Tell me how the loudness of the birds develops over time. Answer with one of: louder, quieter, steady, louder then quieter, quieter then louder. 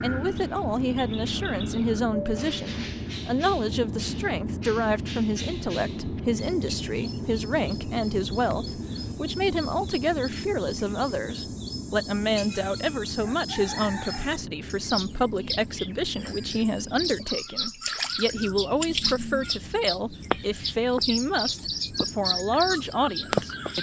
louder.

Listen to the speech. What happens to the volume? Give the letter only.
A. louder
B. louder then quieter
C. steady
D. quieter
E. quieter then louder
C.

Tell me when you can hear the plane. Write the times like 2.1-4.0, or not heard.
0.0-23.7.